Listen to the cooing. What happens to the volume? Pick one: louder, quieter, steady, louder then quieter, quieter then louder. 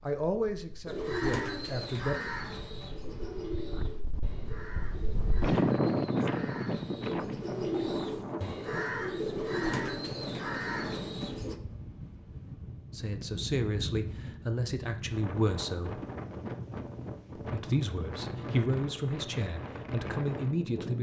quieter then louder.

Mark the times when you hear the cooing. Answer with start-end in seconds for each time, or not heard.
0.8-11.6.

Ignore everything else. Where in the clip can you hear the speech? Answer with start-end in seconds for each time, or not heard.
0.0-2.1, 12.9-16.1, 17.4-20.9.